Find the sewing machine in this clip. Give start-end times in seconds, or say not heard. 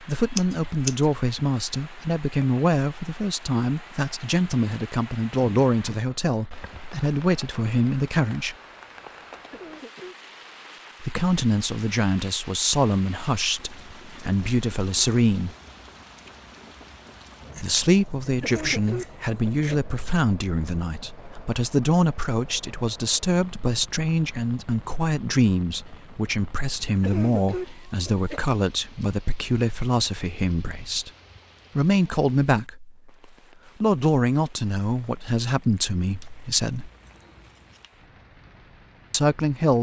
not heard.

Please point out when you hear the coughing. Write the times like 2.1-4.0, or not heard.
9.3-10.2, 18.2-19.8, 26.9-28.4.